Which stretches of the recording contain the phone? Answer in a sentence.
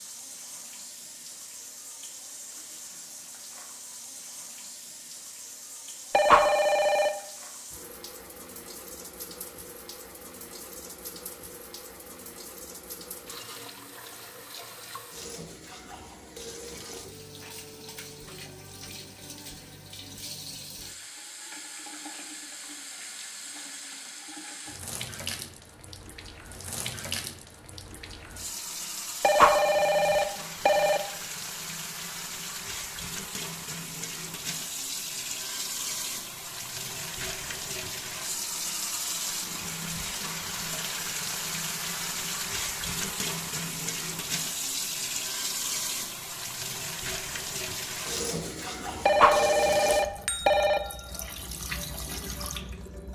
The phone can be heard from 6.1 to 7.1 s, from 29.2 to 31.0 s and from 49.0 to 50.8 s.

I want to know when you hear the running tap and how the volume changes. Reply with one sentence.
You can hear the running tap from 0.0 to 53.0 s, getting louder.